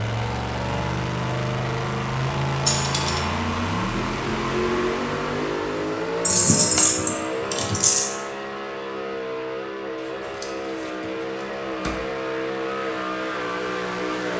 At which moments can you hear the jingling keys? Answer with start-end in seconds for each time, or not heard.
2.6-3.2, 6.2-8.1, 9.9-11.9.